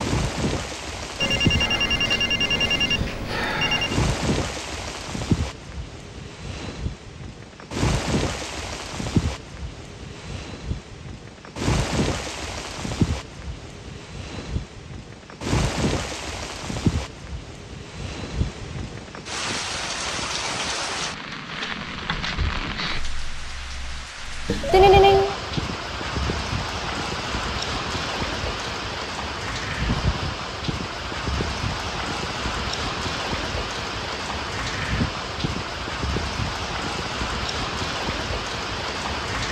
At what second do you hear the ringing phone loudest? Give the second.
25 s.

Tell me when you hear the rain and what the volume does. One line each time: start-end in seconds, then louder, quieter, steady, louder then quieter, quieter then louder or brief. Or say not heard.
0.0-39.4 steady.